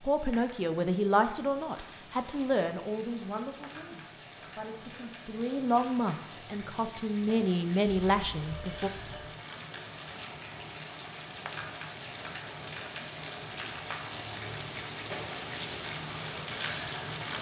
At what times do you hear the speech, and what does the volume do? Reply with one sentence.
The speech can be heard from 0.0 to 8.9 s, getting quieter then louder.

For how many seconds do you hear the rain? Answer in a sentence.
The rain can be heard for 17 seconds in total.